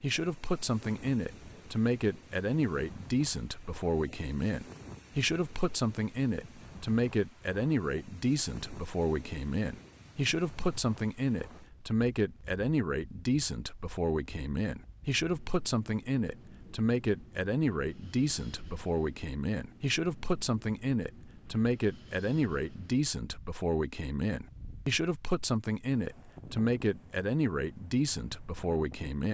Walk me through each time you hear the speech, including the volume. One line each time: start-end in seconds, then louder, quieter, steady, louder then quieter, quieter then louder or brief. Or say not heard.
0.0-29.2 steady.